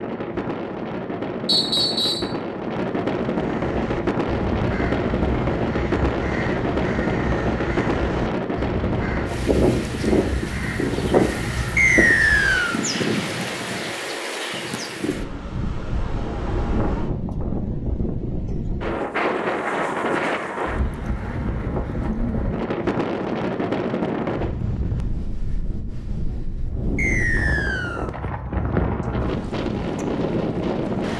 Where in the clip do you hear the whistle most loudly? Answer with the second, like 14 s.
12 s.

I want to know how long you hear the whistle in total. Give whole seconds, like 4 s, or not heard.
3 s.